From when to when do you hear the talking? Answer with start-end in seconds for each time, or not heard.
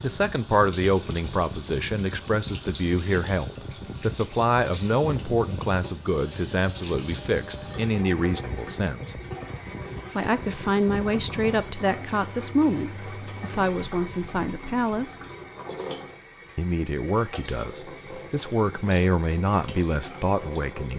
0.0-9.2, 10.2-15.2, 16.6-20.9.